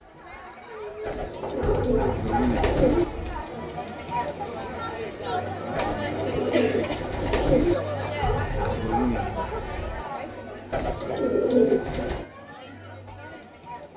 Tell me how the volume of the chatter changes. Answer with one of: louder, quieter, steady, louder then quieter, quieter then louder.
louder then quieter.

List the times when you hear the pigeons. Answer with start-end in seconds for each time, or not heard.
1.1-3.0, 5.8-7.8, 10.7-12.2.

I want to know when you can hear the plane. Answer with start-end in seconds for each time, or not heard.
not heard.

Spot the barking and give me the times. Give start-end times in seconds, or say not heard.
1.4-3.5, 8.0-10.1.